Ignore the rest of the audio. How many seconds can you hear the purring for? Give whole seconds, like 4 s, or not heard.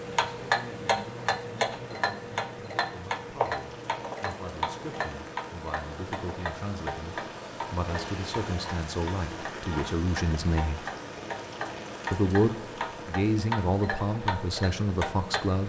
not heard.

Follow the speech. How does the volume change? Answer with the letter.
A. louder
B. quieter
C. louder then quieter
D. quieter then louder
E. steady
A.